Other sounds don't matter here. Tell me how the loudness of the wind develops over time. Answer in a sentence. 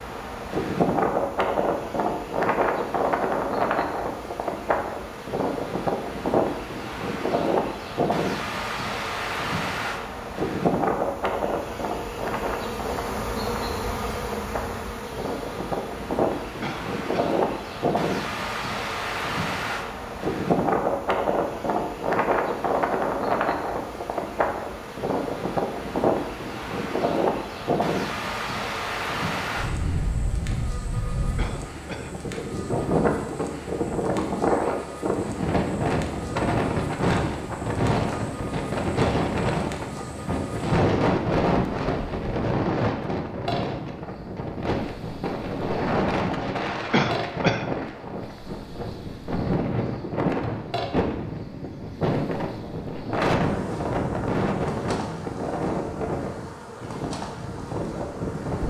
The volume of the wind stays about the same.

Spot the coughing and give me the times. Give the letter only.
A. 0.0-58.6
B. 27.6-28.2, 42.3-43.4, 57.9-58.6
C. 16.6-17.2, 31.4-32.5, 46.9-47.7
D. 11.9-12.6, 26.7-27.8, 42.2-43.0
C.